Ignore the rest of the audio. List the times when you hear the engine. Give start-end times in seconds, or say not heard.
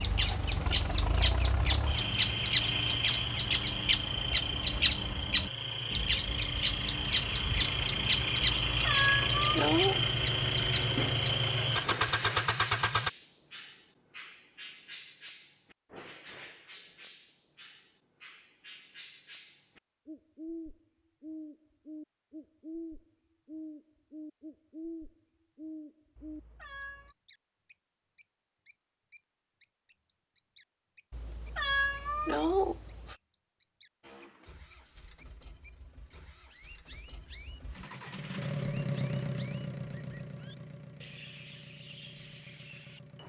0.0-13.1, 34.0-43.2.